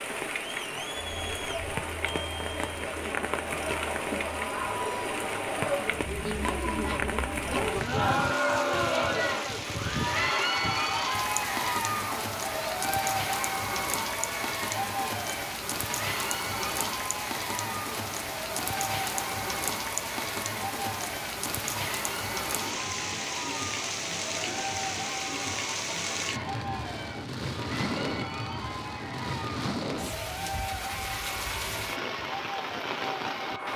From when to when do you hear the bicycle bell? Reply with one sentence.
The bicycle bell can be heard from 1.1 to 2.8 s.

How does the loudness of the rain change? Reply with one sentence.
The loudness of the rain stays about the same.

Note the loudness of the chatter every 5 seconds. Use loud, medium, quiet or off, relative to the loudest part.
medium, loud, loud, medium, medium, medium, medium.